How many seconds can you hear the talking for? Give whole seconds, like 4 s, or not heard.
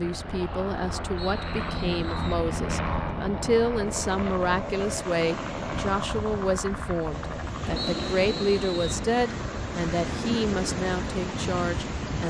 12 s.